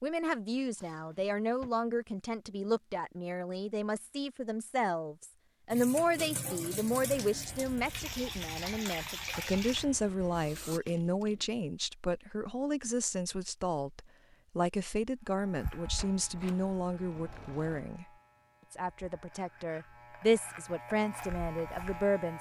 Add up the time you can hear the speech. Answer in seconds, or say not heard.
22 s.